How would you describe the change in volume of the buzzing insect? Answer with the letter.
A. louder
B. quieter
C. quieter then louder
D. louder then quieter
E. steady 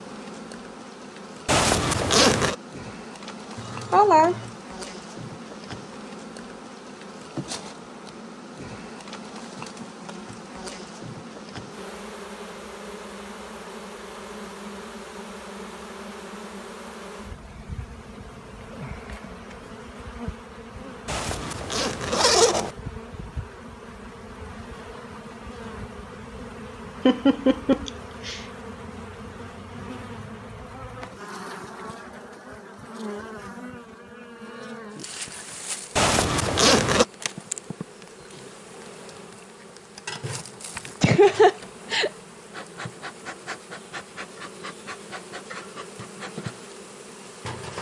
E.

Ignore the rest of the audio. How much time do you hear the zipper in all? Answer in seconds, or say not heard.
4 s.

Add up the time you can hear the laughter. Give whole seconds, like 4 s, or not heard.
3 s.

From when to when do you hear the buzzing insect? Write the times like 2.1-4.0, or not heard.
0.0-47.7.